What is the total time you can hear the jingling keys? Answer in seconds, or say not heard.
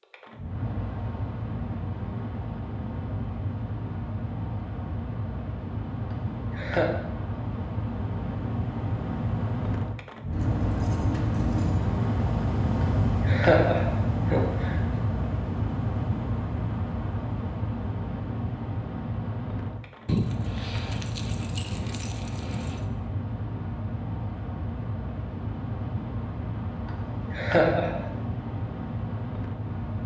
4 s.